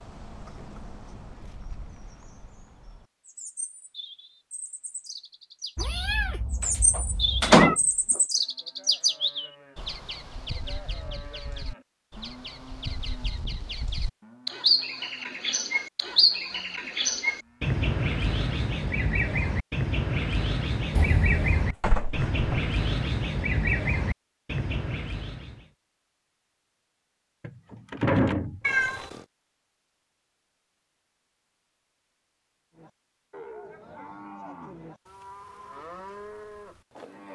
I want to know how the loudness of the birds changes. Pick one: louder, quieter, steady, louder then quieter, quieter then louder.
louder.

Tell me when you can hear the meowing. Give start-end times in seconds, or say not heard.
5.8-7.8, 20.9-21.8, 28.6-29.2.